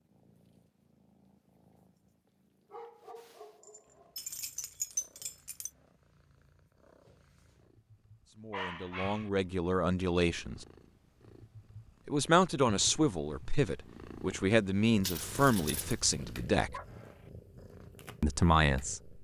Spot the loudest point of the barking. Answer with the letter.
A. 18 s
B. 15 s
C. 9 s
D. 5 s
C.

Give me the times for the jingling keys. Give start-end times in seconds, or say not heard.
4.2-5.7, 15.0-16.0.